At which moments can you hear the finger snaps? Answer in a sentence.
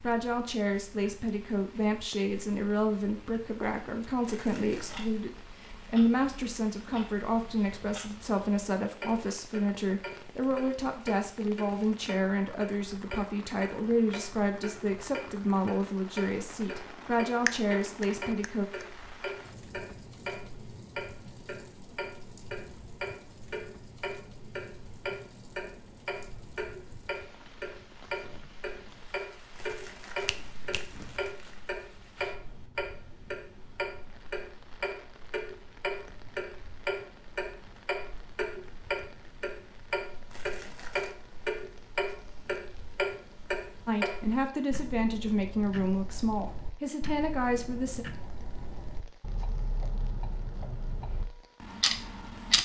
The finger snaps can be heard from 17.4 to 18.9 s and from 30.2 to 31.3 s.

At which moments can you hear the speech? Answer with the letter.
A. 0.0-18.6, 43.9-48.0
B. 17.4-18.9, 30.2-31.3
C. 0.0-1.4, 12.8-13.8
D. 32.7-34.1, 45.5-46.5
A.